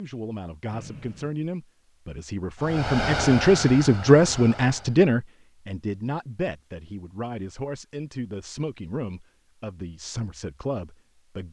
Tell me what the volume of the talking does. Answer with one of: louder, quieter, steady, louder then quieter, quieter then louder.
louder then quieter.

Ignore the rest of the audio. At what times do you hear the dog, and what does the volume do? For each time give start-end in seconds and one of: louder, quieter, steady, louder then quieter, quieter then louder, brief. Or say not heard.
not heard.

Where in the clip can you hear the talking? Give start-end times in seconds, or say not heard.
0.0-11.4.